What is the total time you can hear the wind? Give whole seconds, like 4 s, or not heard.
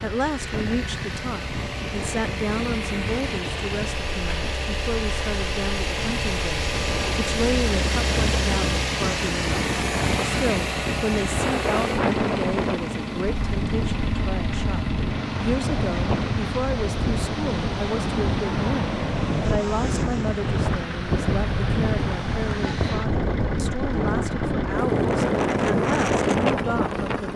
27 s.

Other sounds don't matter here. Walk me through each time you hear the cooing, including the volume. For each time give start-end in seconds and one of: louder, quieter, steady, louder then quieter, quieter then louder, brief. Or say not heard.
not heard.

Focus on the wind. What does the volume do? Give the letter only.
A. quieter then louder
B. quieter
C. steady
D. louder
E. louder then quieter
D.